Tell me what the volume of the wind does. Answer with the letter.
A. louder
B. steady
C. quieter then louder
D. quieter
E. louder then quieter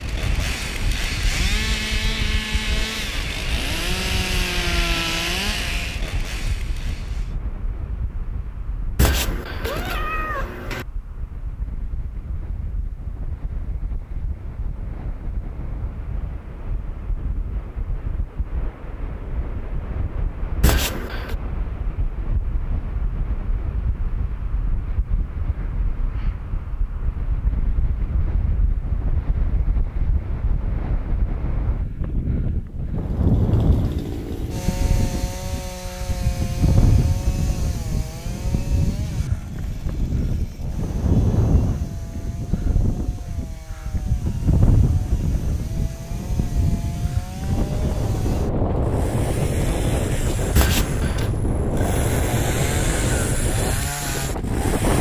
A.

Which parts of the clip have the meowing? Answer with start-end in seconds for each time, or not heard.
8.9-10.8, 20.6-21.4, 50.5-51.3.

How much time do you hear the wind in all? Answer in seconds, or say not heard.
55 s.